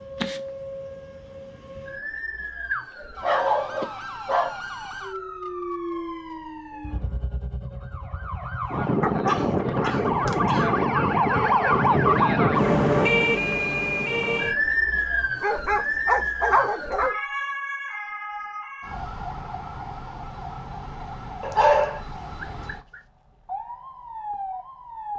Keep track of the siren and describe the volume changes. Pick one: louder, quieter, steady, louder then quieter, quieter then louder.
louder then quieter.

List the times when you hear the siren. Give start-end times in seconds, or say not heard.
0.0-25.1.